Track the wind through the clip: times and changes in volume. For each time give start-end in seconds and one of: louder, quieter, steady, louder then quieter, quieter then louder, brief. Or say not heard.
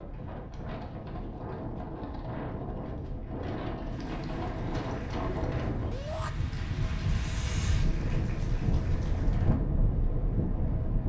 0.0-11.0 louder.